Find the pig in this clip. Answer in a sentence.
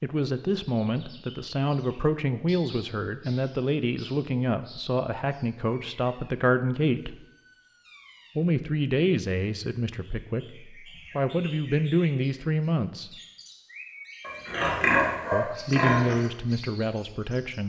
You can hear the pig from 14.2 to 16.1 s.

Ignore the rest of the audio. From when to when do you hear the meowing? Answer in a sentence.
You can't hear the meowing here.